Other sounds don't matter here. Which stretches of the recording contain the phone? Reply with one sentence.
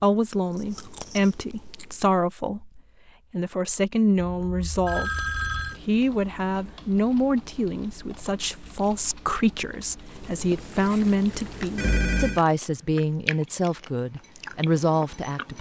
The phone can be heard from 4.3 to 5.8 s and from 11.8 to 12.4 s.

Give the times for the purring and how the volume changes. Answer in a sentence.
You can't hear the purring here.